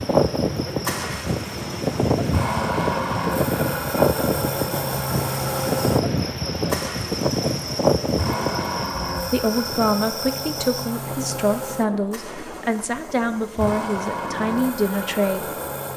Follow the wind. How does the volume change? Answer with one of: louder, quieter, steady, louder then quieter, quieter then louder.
quieter.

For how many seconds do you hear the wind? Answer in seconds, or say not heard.
16 s.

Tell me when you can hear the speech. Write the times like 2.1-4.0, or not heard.
9.3-15.4.